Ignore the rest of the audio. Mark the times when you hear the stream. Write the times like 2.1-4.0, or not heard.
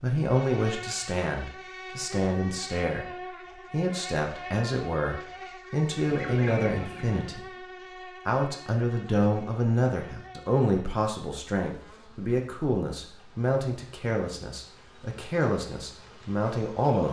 not heard.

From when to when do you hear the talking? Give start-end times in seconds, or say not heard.
0.0-3.0, 3.7-7.7, 8.2-17.0.